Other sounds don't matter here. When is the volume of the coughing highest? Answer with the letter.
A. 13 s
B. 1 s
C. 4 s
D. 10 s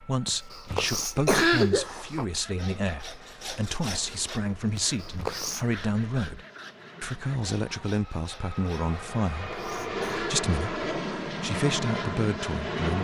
B.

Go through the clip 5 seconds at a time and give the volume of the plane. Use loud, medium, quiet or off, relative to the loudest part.
quiet, medium, loud.